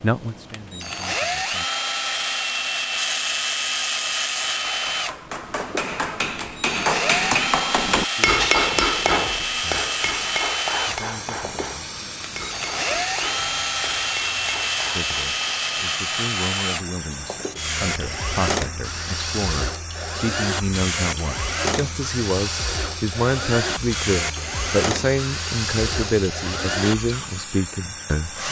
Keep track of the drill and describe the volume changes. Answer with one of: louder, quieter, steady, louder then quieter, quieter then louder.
steady.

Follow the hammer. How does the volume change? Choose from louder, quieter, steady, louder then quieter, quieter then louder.
louder then quieter.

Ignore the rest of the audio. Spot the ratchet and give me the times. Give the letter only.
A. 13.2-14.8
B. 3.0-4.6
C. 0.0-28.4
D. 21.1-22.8
B.